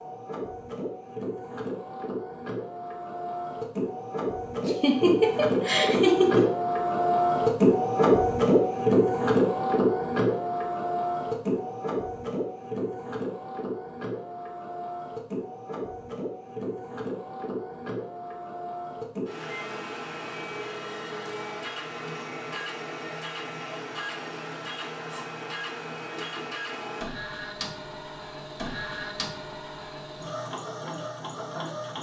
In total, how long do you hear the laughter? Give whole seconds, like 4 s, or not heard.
2 s.